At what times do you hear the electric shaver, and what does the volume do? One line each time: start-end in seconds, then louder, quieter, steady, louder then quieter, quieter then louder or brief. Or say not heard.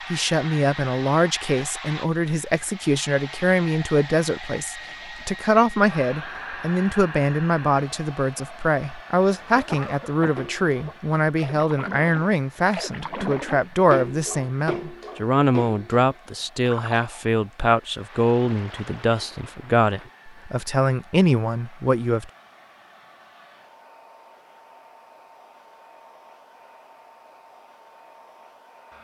not heard.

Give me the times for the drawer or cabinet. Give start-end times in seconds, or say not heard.
not heard.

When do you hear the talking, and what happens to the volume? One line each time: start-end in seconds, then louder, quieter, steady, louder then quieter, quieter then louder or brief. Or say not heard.
0.1-22.3 steady.